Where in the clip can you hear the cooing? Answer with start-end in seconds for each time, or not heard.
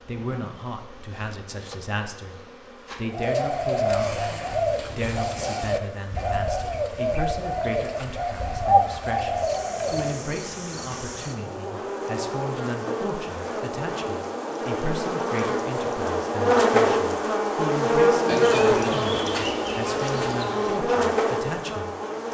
3.1-10.2.